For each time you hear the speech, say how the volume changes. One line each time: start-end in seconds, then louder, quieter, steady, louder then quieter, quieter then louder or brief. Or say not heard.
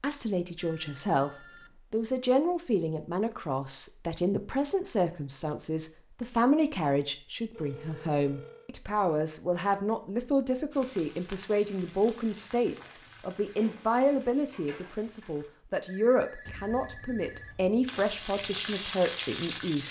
0.0-19.8 steady.